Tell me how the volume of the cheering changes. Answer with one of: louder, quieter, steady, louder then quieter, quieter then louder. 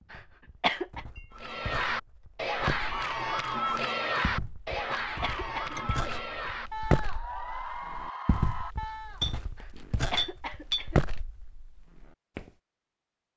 quieter.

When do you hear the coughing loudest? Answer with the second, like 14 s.
1 s.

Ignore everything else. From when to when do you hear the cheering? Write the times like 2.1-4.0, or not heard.
1.3-9.3.